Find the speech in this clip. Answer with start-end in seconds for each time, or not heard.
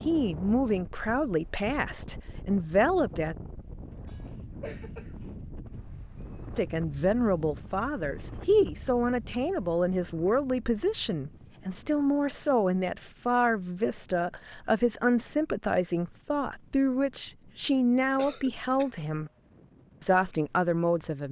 0.1-3.4, 6.5-19.3, 20.0-21.2.